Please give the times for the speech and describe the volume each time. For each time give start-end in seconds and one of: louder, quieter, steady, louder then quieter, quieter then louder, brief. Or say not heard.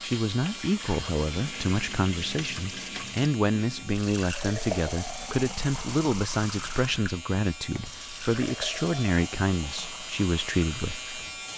0.0-11.0 steady.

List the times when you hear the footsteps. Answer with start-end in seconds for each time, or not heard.
not heard.